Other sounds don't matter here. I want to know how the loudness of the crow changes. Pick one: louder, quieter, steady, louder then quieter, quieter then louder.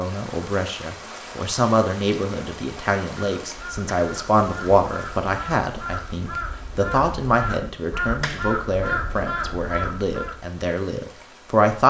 louder.